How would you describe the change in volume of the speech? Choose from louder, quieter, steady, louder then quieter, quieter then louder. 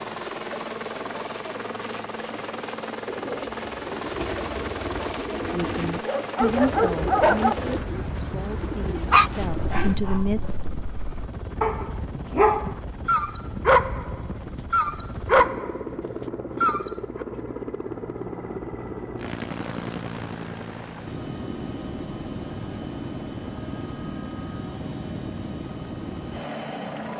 quieter then louder.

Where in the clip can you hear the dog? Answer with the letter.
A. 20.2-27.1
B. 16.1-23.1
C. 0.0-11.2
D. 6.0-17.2
D.